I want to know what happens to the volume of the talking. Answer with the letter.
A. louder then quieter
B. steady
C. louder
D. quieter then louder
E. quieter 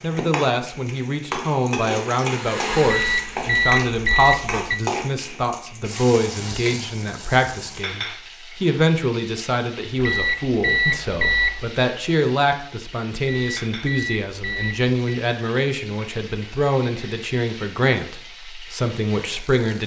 B.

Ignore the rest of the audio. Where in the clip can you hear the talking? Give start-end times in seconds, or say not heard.
0.0-19.8.